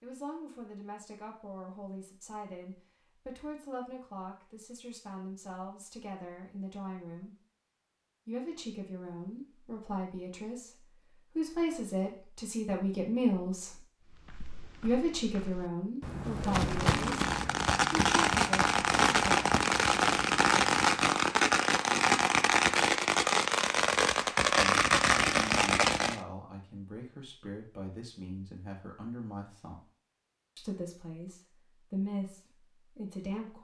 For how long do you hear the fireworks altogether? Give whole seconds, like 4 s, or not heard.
10 s.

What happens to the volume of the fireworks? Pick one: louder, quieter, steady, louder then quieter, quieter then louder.
steady.